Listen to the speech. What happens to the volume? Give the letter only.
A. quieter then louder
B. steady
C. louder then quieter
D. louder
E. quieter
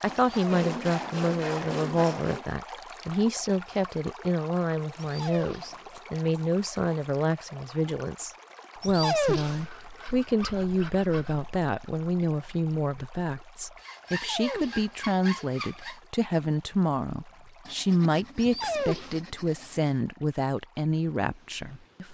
B.